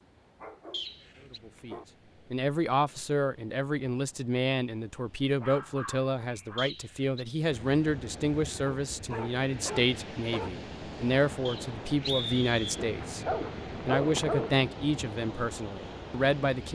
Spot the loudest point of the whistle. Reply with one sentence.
The loudest moment of the whistle is at 12 seconds.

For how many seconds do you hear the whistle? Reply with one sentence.
You can hear the whistle for 3 seconds altogether.